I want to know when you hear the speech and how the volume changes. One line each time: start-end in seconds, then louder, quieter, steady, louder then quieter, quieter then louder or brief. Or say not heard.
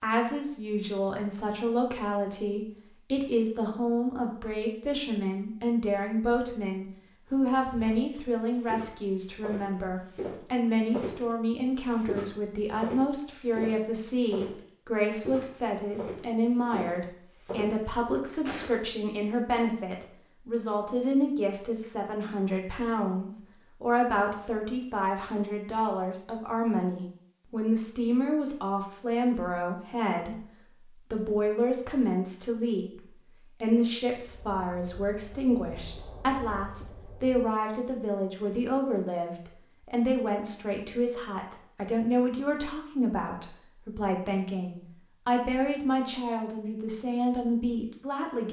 0.0-48.4 steady.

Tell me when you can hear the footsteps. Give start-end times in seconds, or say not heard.
7.2-18.8.